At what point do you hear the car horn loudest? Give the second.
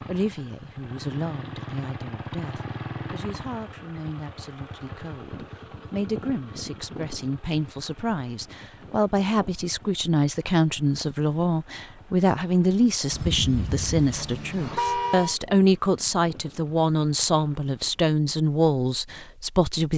15 s.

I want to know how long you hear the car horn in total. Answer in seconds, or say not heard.
2 s.